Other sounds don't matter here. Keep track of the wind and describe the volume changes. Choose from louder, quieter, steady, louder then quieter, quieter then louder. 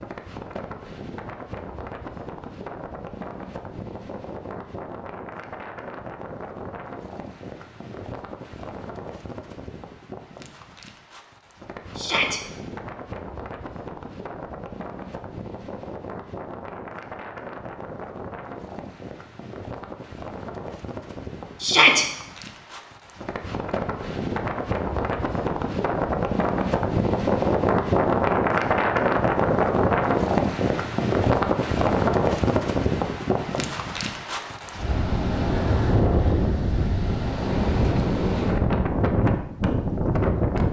louder.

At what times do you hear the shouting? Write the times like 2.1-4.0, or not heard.
11.9-12.4, 21.6-22.1.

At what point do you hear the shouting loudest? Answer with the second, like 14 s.
22 s.